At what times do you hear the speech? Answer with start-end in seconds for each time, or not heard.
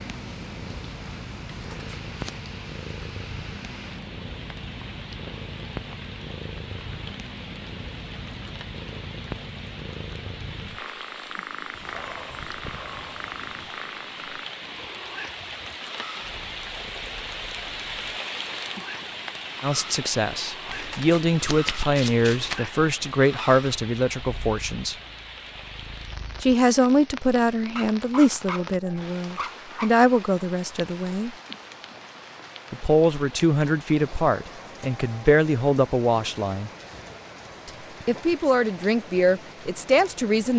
19.6-24.9, 26.4-31.3, 32.7-36.7, 37.6-40.5.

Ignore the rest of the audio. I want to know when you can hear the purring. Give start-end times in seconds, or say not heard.
0.0-26.6.